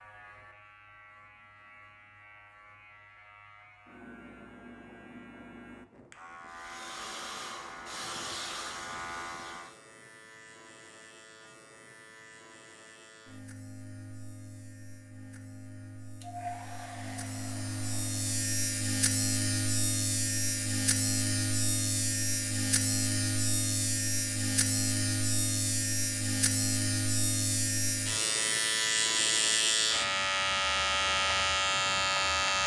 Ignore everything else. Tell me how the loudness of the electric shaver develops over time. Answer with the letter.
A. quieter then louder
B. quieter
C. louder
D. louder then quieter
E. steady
C.